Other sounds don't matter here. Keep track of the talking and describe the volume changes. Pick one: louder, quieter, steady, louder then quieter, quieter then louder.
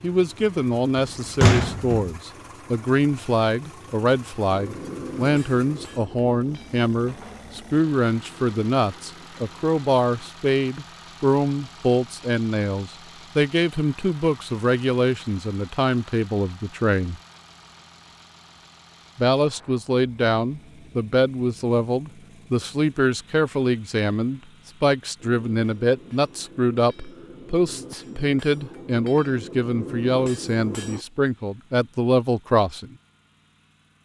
steady.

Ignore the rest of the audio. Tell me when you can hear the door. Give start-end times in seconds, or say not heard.
0.9-2.1.